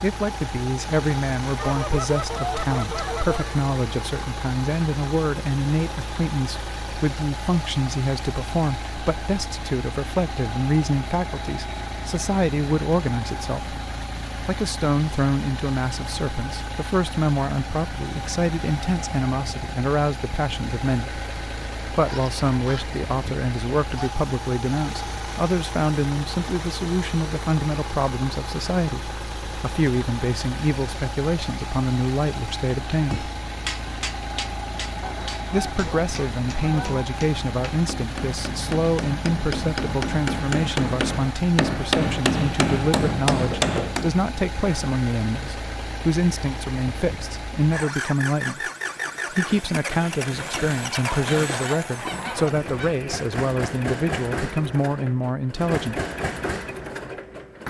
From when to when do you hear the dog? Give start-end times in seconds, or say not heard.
not heard.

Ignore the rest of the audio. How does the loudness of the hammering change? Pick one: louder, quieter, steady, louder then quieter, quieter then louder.
louder.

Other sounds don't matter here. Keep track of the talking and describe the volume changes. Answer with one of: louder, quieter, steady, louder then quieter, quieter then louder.
steady.